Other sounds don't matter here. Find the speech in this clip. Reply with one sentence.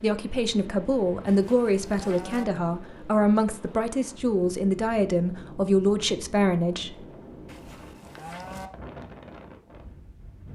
You can hear the speech from 0.0 to 7.0 s.